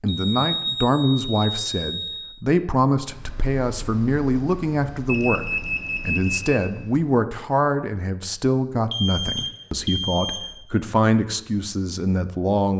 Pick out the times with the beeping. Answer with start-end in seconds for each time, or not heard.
0.1-2.3, 5.0-6.6, 8.9-10.5.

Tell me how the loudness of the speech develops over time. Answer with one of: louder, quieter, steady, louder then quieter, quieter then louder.
steady.